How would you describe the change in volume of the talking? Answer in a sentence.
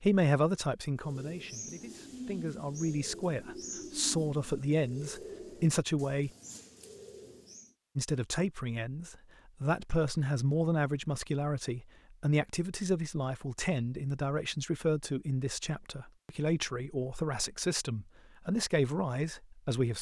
The loudness of the talking stays about the same.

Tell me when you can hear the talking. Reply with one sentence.
The talking can be heard from 0.0 to 6.3 s and from 8.0 to 19.9 s.